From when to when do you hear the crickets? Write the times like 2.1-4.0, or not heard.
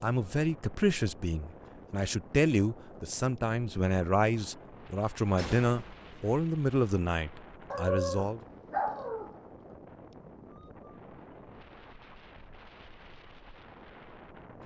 not heard.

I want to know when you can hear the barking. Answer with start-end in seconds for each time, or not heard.
7.7-9.3.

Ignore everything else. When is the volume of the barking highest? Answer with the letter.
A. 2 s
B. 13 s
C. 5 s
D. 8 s
D.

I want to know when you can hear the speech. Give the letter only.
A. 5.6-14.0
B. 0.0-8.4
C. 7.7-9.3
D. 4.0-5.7
B.